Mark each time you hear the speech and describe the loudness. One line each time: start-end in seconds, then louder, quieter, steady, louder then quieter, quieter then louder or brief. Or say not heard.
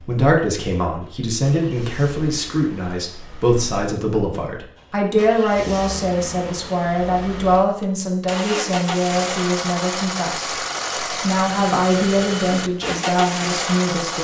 0.0-14.1 steady.